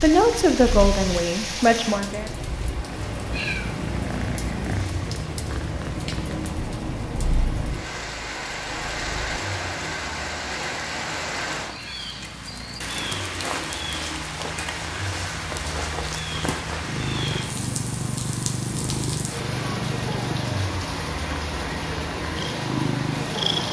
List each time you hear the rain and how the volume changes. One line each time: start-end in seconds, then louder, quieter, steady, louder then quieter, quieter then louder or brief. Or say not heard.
0.0-23.6 steady.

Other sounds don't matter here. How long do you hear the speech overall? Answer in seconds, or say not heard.
2 s.